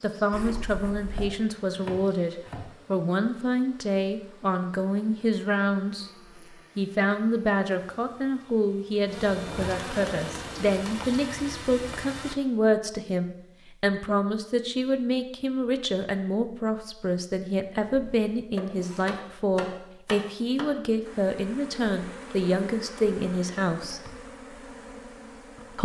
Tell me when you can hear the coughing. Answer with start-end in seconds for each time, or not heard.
not heard.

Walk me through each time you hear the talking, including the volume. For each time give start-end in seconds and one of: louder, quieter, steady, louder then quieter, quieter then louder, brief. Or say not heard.
0.0-6.1 steady
6.8-24.0 steady.